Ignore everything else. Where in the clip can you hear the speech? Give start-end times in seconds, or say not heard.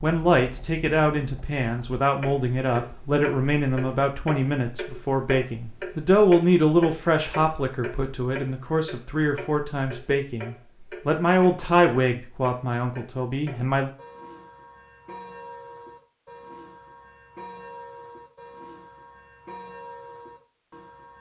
0.0-13.9.